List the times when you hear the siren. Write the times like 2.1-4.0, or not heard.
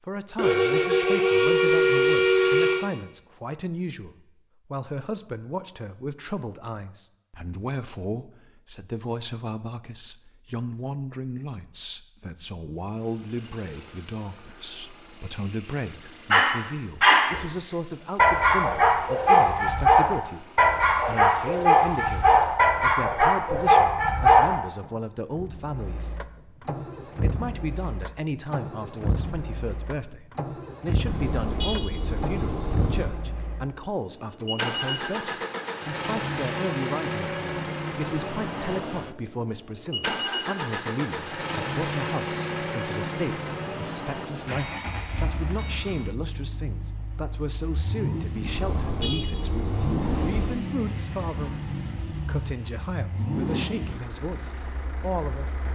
not heard.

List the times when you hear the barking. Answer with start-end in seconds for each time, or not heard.
16.3-24.6.